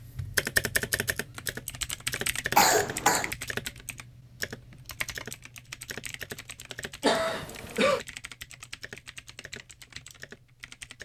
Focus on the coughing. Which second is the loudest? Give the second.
3 s.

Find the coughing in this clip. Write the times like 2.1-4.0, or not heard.
2.5-3.3, 7.0-8.0.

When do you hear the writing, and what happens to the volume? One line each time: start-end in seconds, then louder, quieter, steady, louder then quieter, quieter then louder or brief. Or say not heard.
not heard.